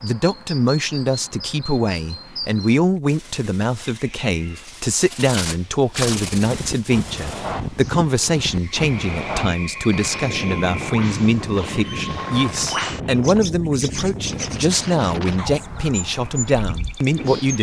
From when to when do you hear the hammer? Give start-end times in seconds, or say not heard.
not heard.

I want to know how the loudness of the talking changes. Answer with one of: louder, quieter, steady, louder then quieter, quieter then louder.
steady.